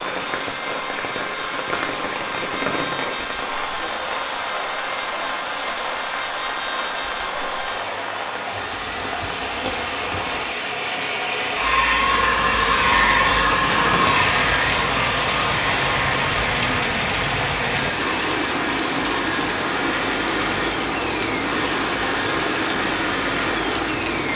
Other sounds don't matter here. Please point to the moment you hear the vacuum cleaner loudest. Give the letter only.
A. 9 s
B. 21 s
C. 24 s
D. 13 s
D.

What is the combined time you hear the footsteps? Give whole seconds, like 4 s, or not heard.
not heard.